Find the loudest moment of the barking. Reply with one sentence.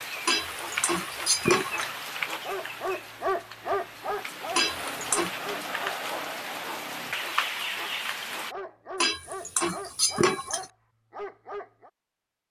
The loudest moment of the barking is at 3 seconds.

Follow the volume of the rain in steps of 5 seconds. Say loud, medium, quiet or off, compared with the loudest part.
loud, loud, off.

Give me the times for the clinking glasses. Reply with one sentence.
You can hear the clinking glasses from 0.2 to 1.9 s, from 4.5 to 5.3 s and from 9.0 to 10.7 s.